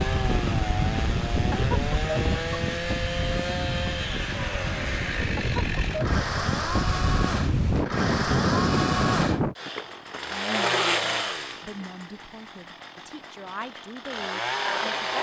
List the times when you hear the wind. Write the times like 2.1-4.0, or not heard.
0.0-9.6.